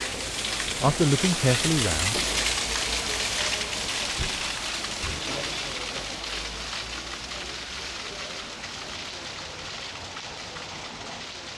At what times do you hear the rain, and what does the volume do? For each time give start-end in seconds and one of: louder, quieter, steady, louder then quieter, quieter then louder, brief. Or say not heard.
0.0-11.5 quieter.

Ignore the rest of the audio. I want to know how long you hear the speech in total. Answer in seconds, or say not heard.
2 s.